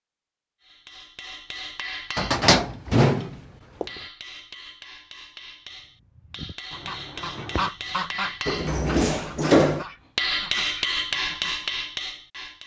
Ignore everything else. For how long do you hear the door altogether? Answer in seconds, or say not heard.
3 s.